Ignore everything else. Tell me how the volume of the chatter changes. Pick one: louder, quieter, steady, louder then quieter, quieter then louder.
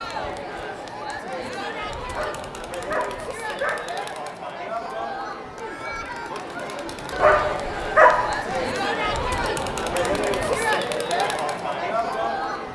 louder.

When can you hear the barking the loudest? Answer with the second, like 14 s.
8 s.